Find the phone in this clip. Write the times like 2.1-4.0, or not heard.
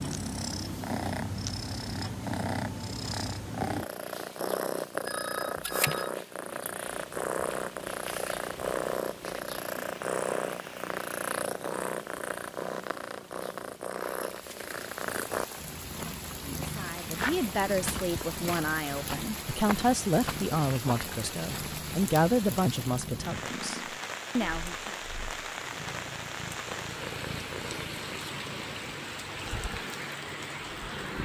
5.0-6.2.